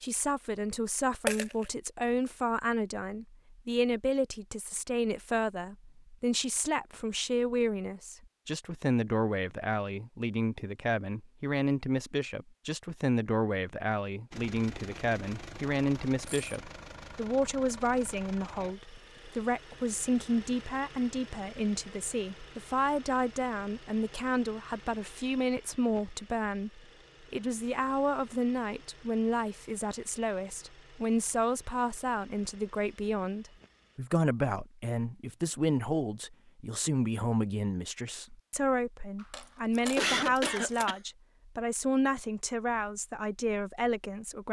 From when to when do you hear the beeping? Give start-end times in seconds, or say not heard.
not heard.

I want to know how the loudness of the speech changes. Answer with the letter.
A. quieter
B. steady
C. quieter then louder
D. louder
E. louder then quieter
B.